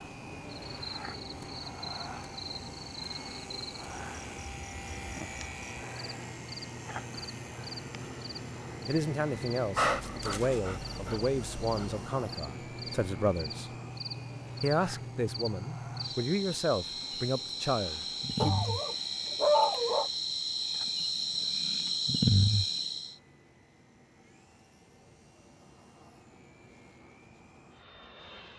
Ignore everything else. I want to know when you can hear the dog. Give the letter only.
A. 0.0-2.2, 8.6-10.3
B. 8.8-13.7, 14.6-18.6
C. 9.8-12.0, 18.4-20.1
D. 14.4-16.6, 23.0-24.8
C.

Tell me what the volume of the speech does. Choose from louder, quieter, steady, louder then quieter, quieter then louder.
steady.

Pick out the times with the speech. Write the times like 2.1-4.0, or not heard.
8.8-13.7, 14.6-18.6.